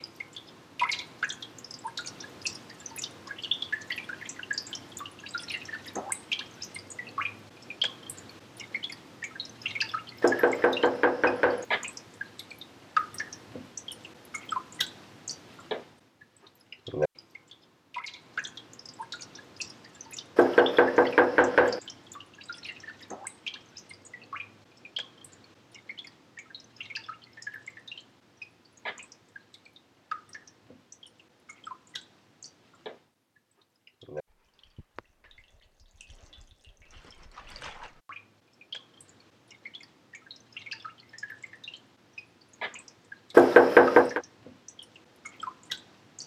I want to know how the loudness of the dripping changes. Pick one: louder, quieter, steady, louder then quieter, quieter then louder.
quieter.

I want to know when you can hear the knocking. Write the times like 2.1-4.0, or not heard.
10.2-11.7, 20.4-21.8, 43.4-44.2.